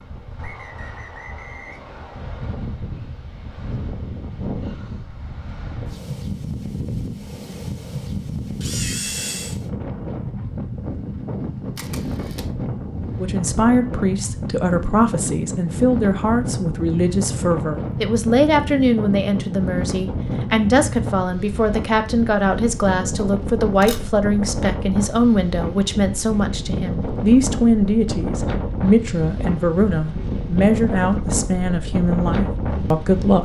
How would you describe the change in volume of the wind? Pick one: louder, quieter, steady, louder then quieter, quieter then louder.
louder.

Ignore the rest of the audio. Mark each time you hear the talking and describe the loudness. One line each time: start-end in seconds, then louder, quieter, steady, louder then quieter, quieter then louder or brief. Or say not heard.
13.2-33.4 steady.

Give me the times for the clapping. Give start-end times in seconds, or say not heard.
not heard.